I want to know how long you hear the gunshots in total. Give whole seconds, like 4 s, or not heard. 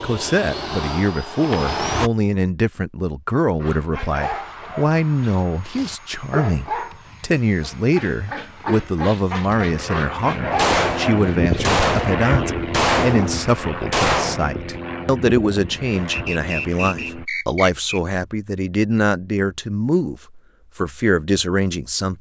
4 s.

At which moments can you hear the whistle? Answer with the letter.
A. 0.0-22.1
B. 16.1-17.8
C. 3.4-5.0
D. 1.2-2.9
B.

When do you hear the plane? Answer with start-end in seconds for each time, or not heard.
0.0-2.1, 4.2-17.2.